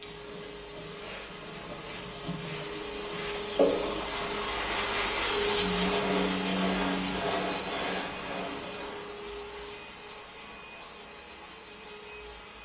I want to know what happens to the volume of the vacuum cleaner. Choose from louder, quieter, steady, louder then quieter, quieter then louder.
louder then quieter.